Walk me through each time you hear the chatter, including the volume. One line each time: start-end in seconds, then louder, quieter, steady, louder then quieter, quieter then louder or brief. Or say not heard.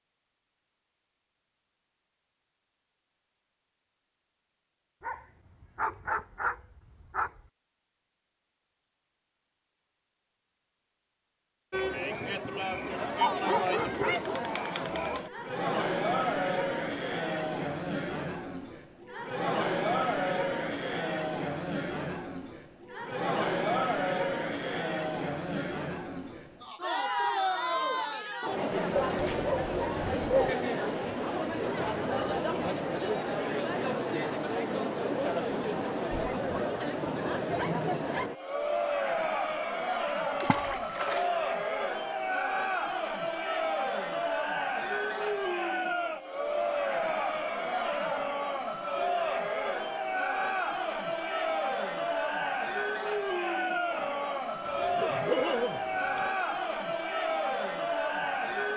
11.7-58.7 steady.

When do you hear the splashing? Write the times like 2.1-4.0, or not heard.
40.4-41.4.